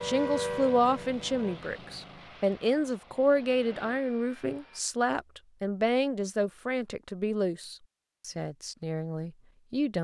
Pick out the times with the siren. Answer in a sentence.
The siren can be heard from 0.0 to 1.6 s.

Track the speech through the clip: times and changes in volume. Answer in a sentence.
The speech can be heard from 0.0 to 9.9 s, getting quieter.